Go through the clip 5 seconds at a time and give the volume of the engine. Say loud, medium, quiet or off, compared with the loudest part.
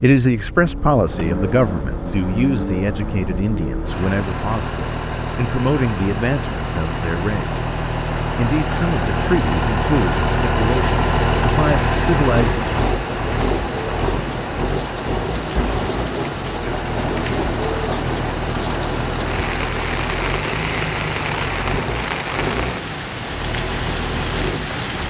medium, loud, loud, medium, medium.